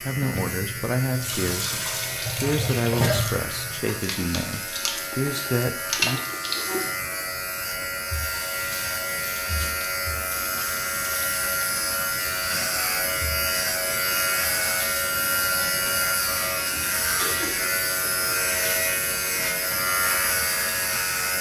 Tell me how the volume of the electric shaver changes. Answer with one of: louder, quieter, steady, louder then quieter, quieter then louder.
louder.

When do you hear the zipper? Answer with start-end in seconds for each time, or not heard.
not heard.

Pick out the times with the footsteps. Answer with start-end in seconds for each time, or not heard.
not heard.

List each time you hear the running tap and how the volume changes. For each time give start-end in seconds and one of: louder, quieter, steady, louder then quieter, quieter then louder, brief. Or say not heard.
0.1-21.3 quieter.